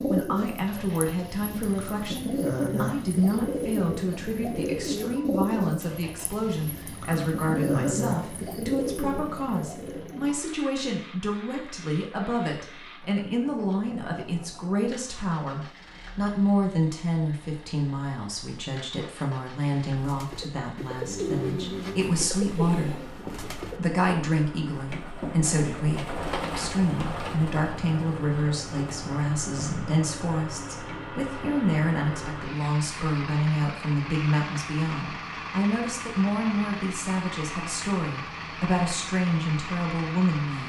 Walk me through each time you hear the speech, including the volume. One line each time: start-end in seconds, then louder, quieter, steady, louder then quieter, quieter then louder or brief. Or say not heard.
0.0-40.6 steady.